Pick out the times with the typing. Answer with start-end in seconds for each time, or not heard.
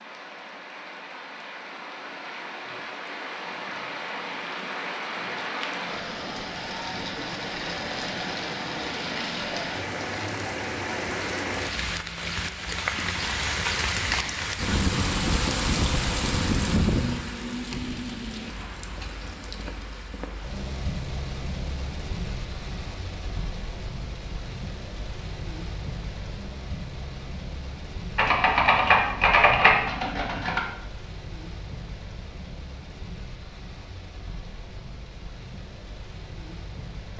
28.1-30.6.